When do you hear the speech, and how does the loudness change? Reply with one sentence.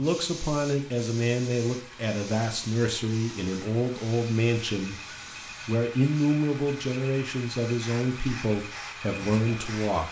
The speech can be heard from 0.0 to 10.0 s, at a steady volume.